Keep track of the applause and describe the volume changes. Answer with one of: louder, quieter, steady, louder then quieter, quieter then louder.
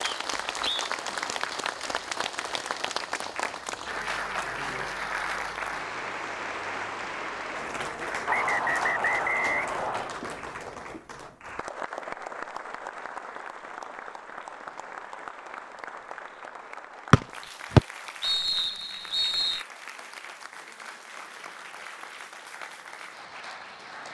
quieter.